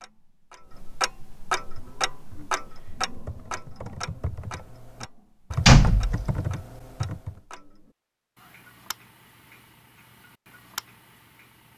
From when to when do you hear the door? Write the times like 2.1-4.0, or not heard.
5.7-6.4.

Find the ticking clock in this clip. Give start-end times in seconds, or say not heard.
0.0-11.7.